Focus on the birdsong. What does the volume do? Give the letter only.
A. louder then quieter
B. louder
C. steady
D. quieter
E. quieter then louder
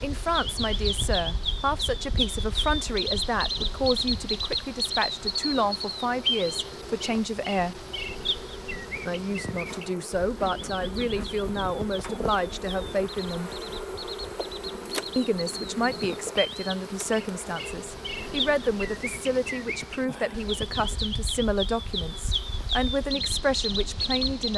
E.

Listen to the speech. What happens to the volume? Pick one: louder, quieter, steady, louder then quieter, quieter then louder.
steady.